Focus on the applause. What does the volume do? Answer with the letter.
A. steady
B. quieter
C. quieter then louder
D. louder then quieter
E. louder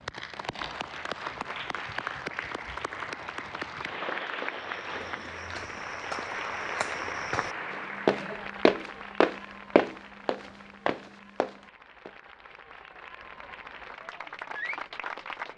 C.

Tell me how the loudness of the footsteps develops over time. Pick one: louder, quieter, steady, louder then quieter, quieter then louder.
louder then quieter.